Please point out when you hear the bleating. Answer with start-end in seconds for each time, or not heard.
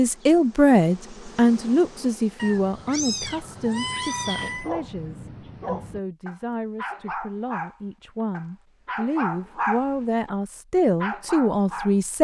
not heard.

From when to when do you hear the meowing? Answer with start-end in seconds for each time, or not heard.
2.4-4.7.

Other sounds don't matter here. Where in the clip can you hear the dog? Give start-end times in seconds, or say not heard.
4.4-10.3, 11.0-12.0.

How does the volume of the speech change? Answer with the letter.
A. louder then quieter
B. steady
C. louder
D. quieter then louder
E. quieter
D.